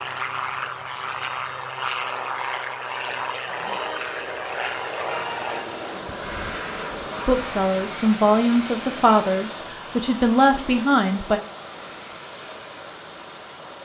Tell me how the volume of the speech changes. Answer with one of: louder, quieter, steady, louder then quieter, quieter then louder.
steady.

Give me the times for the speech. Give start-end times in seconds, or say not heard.
7.2-11.4.